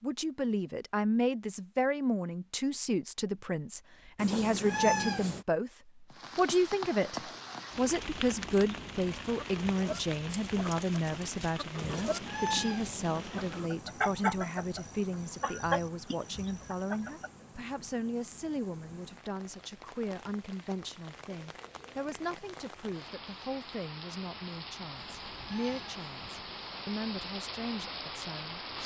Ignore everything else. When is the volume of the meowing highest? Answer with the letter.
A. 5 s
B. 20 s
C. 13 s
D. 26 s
A.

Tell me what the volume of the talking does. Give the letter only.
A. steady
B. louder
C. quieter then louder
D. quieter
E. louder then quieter
D.